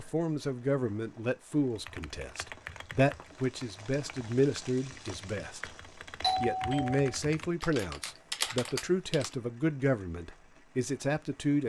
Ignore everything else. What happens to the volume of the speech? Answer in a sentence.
The volume of the speech stays about the same.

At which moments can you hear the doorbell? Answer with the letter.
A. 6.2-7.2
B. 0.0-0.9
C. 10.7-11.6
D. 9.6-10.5
A.